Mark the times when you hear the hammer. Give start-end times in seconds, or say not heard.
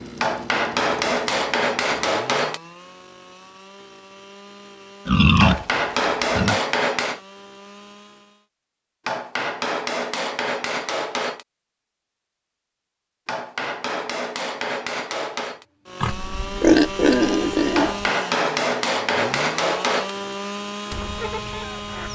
0.2-2.6, 5.4-7.2, 9.1-11.4, 13.2-15.7, 17.8-20.1.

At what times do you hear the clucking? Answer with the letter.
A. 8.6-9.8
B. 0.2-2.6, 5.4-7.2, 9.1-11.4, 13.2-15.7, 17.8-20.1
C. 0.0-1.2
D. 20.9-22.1
D.